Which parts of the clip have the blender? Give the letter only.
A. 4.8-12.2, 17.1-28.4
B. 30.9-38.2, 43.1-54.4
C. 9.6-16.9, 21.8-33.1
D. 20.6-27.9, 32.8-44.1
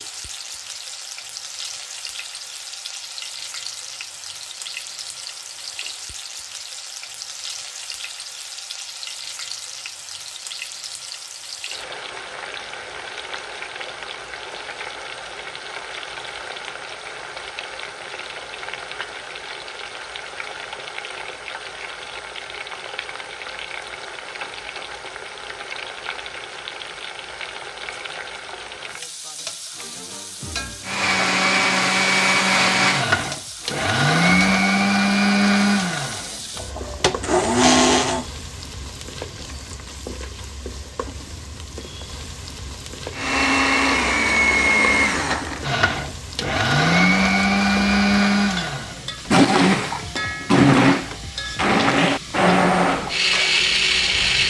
B.